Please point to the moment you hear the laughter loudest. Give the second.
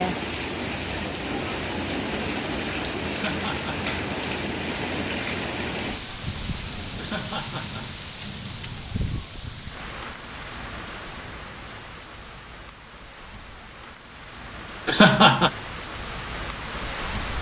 15 s.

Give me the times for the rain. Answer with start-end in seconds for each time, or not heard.
0.0-17.3.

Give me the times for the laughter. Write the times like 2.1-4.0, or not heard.
3.1-3.9, 7.0-8.0, 14.8-15.5.